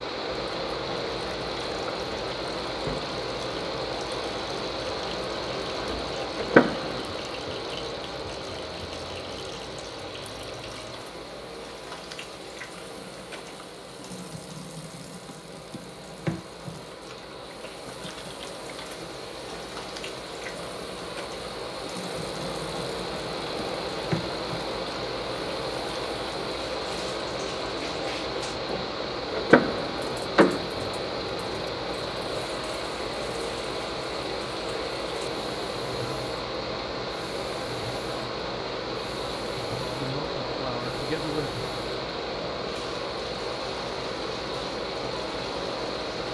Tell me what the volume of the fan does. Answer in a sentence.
The volume of the fan goes down, then up.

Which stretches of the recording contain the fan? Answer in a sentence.
The fan can be heard from 0.0 to 46.2 s.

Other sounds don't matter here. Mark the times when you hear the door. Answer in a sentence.
You can hear the door from 6.3 to 7.0 s and from 29.4 to 30.6 s.